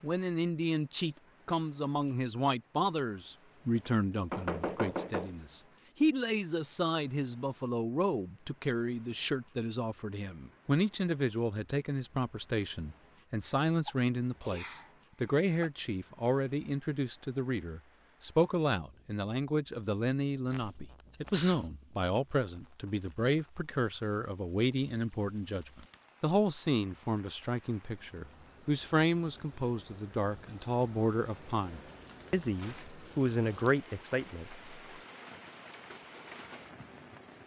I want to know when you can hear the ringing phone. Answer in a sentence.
The ringing phone can't be heard in this clip.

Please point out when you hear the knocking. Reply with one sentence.
The knocking can be heard from 3.8 to 5.3 s.